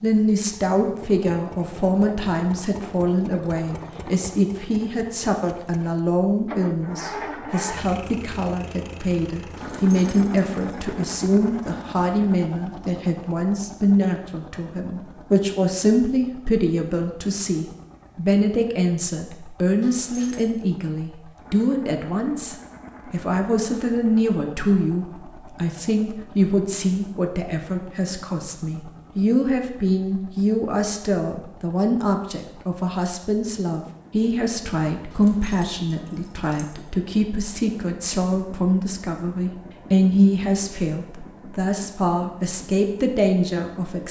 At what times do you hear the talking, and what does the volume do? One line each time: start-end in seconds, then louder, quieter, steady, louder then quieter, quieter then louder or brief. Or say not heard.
0.0-44.0 steady.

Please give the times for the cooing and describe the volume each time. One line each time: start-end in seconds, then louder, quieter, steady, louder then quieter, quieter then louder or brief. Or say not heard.
not heard.